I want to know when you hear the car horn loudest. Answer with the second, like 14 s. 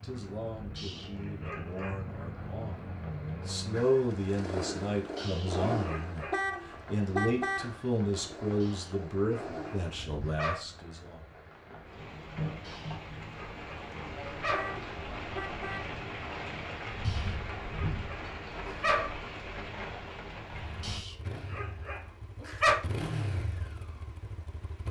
7 s.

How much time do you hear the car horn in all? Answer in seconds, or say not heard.
3 s.